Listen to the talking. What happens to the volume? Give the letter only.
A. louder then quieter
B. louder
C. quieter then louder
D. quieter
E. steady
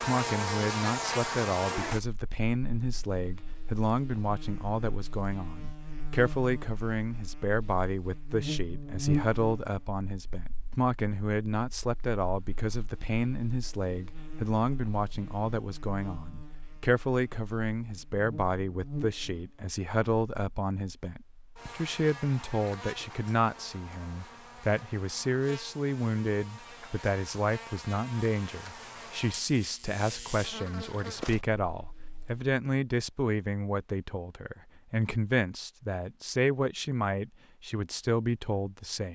E.